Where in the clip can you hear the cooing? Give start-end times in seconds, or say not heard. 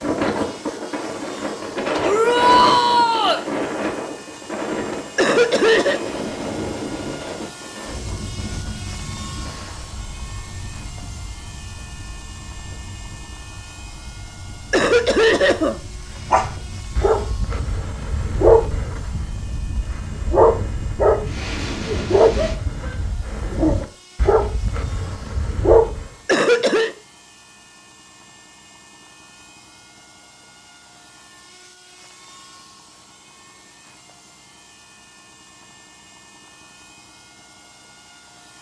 not heard.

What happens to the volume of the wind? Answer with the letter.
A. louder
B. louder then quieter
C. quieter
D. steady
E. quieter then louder
E.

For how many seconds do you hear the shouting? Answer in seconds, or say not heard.
2 s.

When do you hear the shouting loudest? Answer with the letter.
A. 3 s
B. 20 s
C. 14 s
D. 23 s
A.